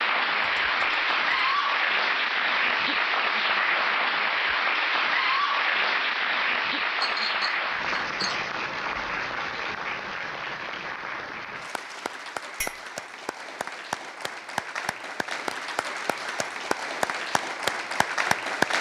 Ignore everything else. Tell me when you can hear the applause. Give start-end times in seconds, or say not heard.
0.0-18.7.